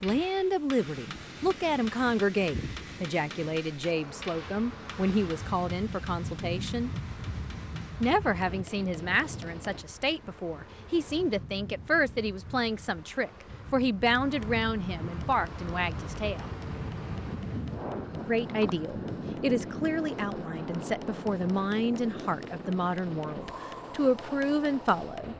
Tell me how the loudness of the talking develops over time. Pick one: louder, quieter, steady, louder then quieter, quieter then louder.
steady.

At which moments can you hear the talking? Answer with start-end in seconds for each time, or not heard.
0.0-6.9, 8.0-16.5, 18.2-25.3.